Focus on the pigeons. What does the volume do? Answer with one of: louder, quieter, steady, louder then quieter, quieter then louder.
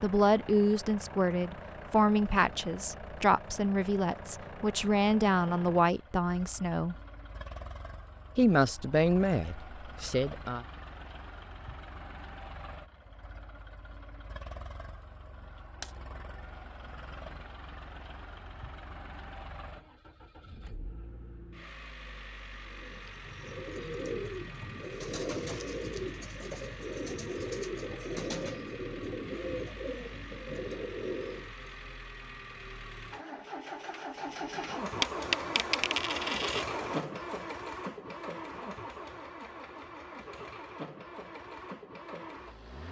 steady.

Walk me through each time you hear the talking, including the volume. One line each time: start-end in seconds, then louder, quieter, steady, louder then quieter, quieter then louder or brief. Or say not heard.
0.0-7.0 steady
8.3-10.7 brief.